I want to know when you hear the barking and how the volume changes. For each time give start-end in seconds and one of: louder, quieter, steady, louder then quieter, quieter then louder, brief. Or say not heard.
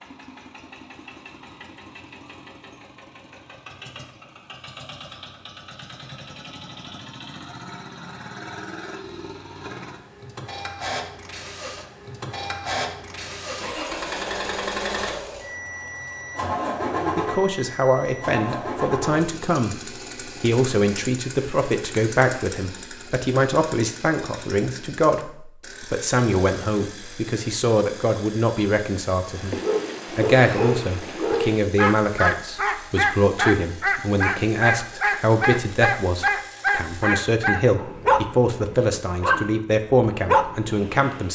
29.4-41.1 steady.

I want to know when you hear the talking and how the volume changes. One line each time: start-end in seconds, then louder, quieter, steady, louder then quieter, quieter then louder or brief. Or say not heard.
16.9-41.3 steady.